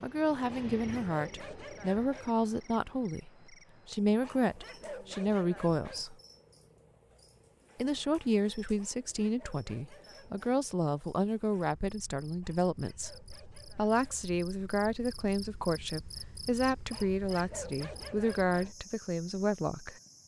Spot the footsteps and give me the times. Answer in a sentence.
The footsteps can't be heard in this clip.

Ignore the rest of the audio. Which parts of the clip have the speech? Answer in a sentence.
You can hear the speech from 0.0 to 6.2 s, from 7.8 to 13.1 s and from 13.8 to 19.9 s.